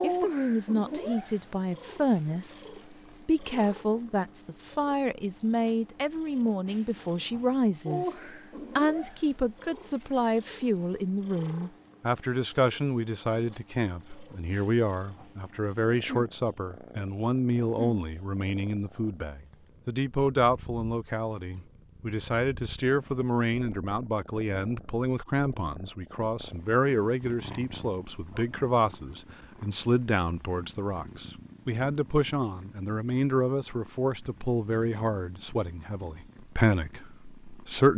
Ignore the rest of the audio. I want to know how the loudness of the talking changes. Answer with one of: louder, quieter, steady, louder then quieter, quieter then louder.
steady.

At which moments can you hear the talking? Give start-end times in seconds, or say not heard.
0.0-8.2, 8.8-37.9.